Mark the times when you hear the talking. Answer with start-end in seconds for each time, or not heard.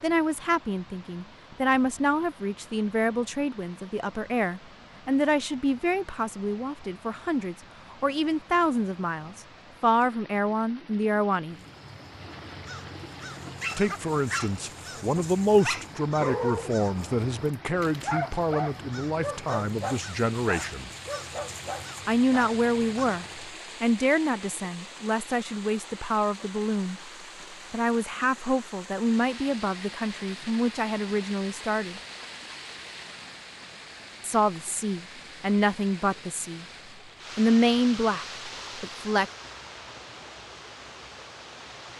0.0-11.6, 13.8-20.9, 22.1-27.0, 27.7-32.0, 34.2-36.6, 37.4-39.2.